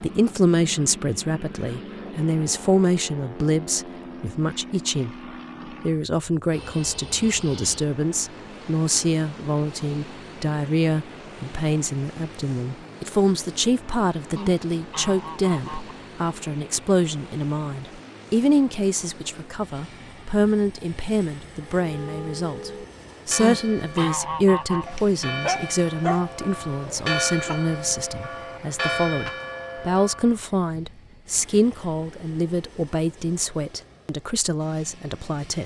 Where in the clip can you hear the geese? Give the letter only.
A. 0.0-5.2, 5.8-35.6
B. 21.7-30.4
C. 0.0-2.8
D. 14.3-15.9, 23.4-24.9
D.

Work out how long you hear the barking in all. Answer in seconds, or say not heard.
3 s.